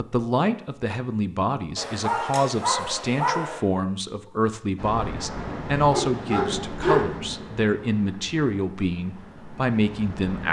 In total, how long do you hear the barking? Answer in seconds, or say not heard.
3 s.